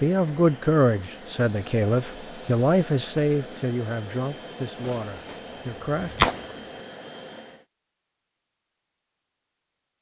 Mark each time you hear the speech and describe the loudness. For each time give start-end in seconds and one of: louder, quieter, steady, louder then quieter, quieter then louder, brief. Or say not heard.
0.0-6.2 quieter.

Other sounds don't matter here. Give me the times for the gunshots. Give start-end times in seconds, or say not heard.
4.8-6.5.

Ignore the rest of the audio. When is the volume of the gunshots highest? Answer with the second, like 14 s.
6 s.